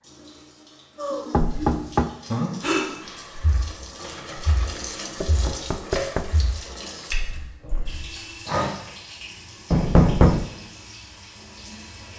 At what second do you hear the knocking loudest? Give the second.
10 s.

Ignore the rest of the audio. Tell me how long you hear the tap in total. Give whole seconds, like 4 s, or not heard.
12 s.